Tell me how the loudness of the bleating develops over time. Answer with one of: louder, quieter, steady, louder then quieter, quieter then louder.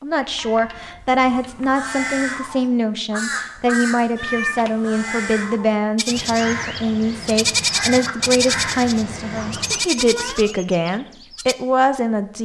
louder then quieter.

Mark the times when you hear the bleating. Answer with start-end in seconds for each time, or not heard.
6.0-11.6.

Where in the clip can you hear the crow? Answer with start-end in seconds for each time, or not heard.
1.2-9.8.